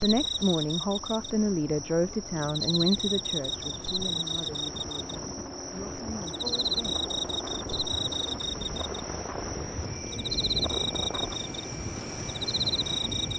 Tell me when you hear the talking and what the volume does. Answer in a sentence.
The talking can be heard from 0.0 to 7.0 s, getting quieter.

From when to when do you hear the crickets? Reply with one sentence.
The crickets can be heard from 0.0 to 13.3 s.